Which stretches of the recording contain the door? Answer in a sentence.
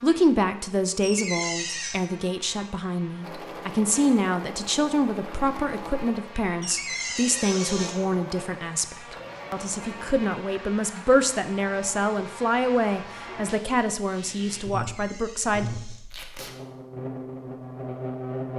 The door can be heard from 1.0 to 1.9 s, from 6.6 to 8.0 s and from 14.7 to 16.1 s.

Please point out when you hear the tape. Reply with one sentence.
The tape can be heard from 16.1 to 16.6 s.